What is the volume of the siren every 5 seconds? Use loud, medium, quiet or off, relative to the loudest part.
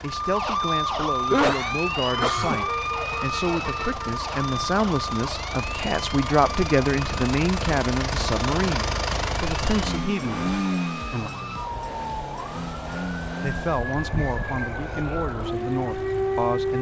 loud, medium, medium, loud.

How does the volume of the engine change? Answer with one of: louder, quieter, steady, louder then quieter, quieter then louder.
louder then quieter.